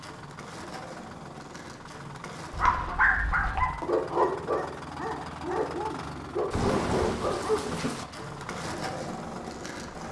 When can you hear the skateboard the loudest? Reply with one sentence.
The loudest moment of the skateboard is at 9 seconds.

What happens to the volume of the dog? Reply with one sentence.
The loudness of the dog goes down, then up.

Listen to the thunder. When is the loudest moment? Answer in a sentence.
The volume of the thunder peaks at 7 seconds.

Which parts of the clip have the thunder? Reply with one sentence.
The thunder can be heard from 6.5 to 8.1 s.